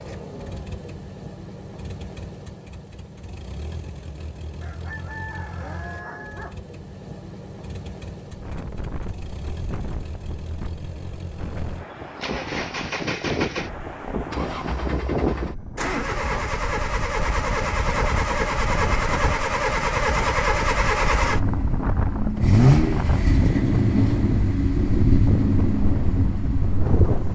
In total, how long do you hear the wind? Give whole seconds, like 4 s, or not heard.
19 s.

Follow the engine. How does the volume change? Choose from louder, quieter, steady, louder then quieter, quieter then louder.
louder.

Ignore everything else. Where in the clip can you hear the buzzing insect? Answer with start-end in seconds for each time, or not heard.
not heard.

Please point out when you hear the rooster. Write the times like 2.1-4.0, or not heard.
4.6-6.5.